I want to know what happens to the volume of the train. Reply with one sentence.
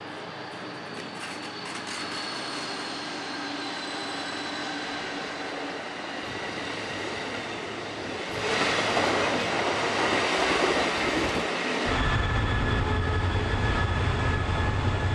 The loudness of the train goes up.